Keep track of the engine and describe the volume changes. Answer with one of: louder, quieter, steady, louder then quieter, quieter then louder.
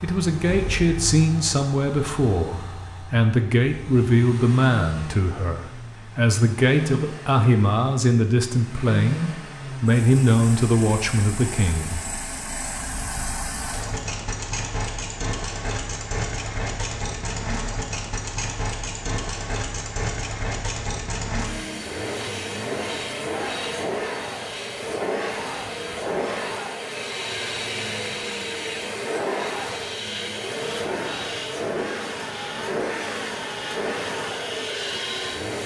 louder.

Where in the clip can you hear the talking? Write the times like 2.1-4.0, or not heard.
0.0-12.1.